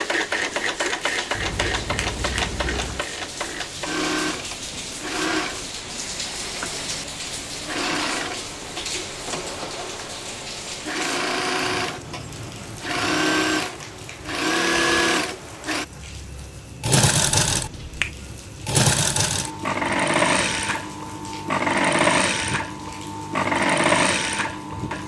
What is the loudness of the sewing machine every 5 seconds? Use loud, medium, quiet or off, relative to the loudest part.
medium, medium, loud, loud, loud.